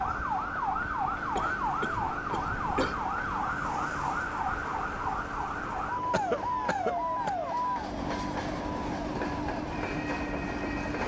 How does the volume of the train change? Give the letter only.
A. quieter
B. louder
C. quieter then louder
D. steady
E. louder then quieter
B.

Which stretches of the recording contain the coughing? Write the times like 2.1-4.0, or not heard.
1.4-3.0, 6.1-7.3.